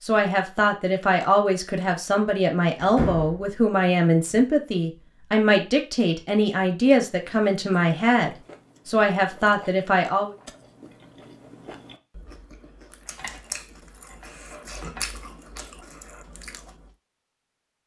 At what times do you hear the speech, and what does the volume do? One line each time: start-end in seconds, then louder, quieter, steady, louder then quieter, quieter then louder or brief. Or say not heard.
0.0-10.3 steady.